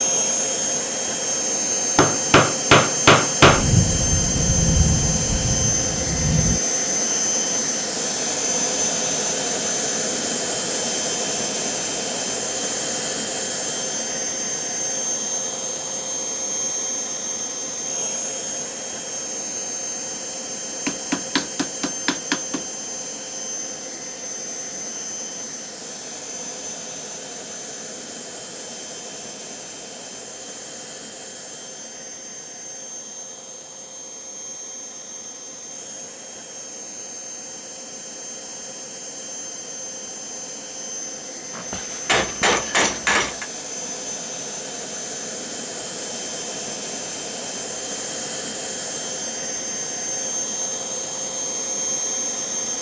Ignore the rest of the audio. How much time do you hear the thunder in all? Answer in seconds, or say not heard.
3 s.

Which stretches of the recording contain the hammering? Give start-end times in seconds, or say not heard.
1.9-3.7, 20.9-22.6, 41.5-43.5.